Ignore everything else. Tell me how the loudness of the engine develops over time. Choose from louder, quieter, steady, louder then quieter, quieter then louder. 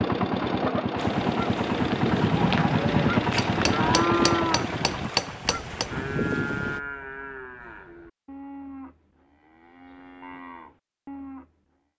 steady.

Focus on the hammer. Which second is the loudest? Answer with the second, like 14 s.
5 s.